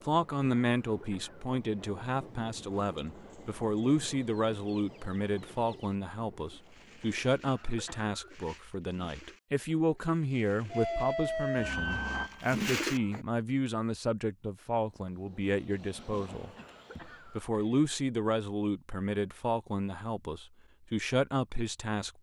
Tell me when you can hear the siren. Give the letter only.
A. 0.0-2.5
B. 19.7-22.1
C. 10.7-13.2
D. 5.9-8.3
C.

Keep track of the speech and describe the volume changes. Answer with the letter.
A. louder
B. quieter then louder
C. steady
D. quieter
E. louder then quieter
C.